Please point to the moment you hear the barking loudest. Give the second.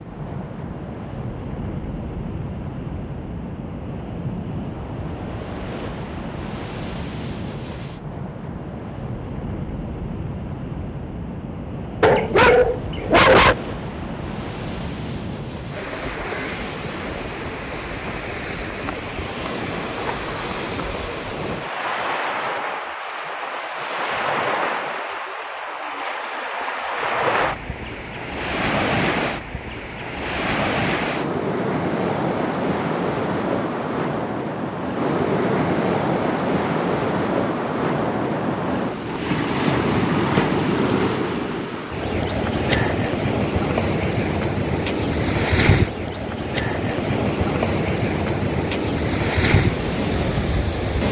13 s.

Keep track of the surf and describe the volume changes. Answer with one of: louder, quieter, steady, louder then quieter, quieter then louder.
louder.